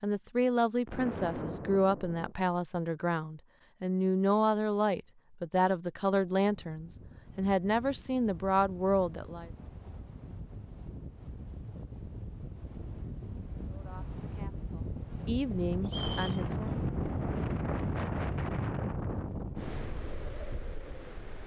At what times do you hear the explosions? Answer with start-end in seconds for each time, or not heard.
0.8-2.4.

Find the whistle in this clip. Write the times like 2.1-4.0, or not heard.
15.8-16.4.